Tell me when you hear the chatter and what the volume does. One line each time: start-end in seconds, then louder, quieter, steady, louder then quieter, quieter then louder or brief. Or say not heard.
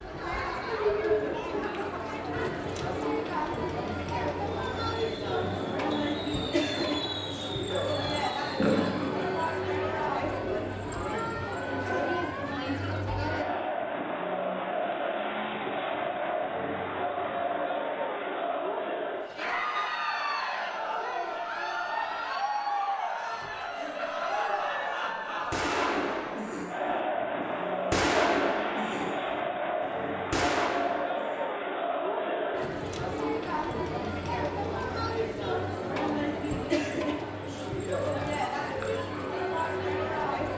0.0-40.5 steady.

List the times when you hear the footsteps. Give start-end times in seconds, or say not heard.
not heard.